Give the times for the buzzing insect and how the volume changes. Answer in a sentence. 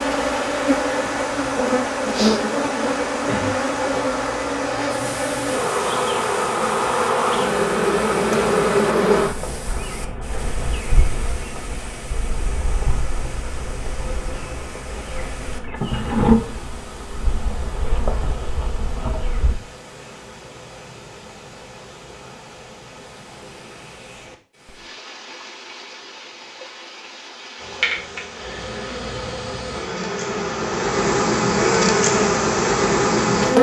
You can hear the buzzing insect from 0.0 to 19.6 s, getting quieter then louder; and from 27.6 to 33.5 s, getting louder.